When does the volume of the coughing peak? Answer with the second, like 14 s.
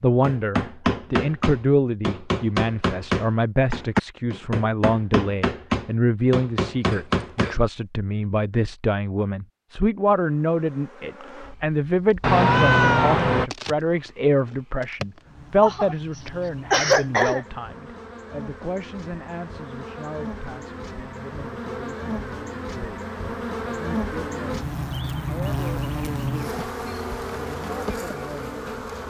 17 s.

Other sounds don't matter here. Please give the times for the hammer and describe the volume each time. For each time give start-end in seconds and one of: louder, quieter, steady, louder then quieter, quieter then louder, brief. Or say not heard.
0.2-7.5 steady.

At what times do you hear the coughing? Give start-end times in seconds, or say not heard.
6.8-7.6, 15.6-17.4.